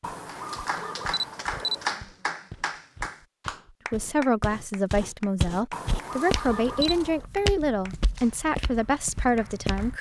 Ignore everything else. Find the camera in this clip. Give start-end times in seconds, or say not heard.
0.0-1.9, 5.7-7.2.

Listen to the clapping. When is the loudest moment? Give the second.
2 s.